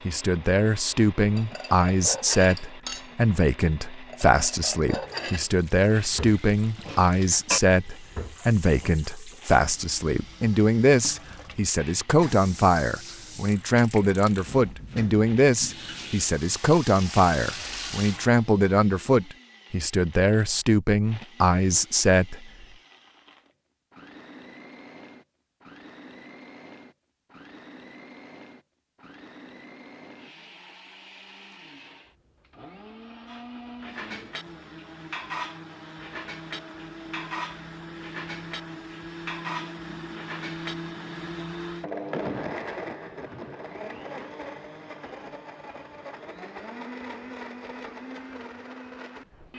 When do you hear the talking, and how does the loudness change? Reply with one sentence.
You can hear the talking from 0.1 to 22.5 s, at a steady volume.